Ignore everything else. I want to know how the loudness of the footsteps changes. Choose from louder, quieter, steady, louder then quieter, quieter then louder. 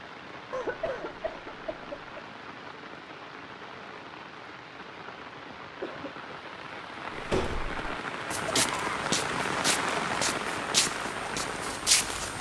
louder then quieter.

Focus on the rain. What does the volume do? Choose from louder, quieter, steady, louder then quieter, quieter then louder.
louder.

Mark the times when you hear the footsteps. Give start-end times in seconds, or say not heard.
7.2-12.3.